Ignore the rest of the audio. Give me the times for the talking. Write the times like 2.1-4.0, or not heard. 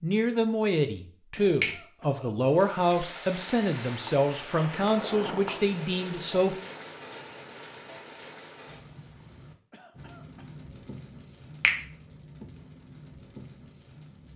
0.0-6.6.